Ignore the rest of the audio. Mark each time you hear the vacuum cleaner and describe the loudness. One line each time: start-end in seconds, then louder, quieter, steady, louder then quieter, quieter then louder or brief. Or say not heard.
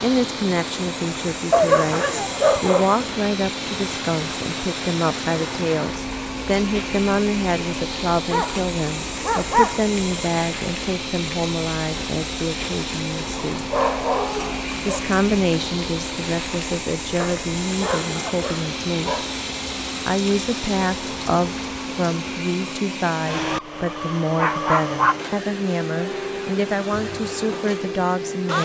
0.0-28.6 steady.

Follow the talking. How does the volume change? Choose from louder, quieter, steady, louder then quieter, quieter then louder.
steady.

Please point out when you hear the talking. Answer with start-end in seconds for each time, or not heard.
0.0-13.7, 14.8-19.2, 20.1-28.6.